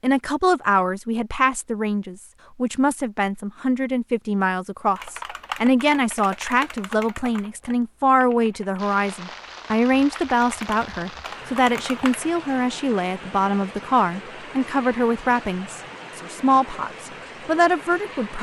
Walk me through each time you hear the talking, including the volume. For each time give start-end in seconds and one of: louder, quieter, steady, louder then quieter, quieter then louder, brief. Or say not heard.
0.0-18.3 steady.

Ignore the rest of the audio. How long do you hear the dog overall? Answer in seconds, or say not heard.
not heard.